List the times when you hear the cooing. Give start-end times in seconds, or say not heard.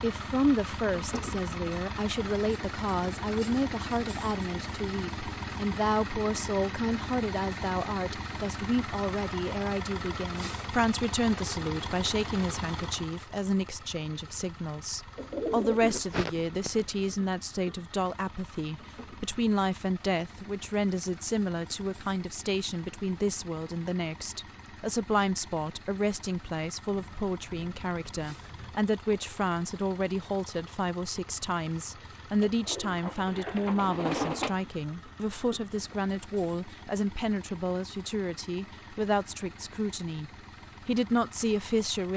15.2-17.2, 32.4-34.6.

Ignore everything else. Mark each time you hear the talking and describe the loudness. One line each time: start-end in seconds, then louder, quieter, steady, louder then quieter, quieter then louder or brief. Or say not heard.
0.0-42.1 steady.